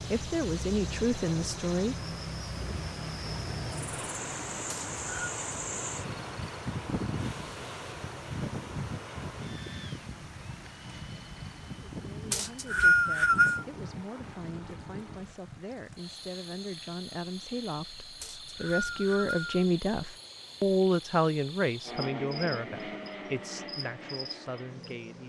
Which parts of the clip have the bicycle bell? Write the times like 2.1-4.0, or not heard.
not heard.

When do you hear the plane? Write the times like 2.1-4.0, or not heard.
0.0-15.4, 21.9-25.2.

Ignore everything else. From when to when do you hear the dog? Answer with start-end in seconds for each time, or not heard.
not heard.